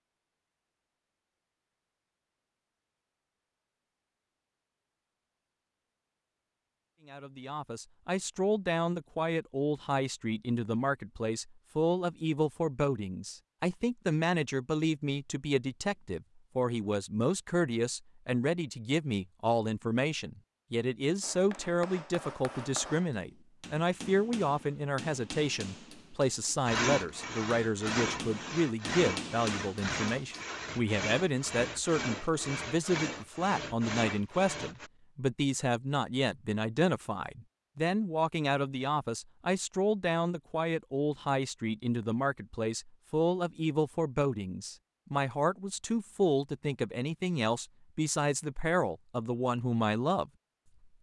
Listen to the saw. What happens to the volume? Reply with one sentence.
The loudness of the saw stays about the same.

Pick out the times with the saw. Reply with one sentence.
You can hear the saw from 26.6 to 34.9 s.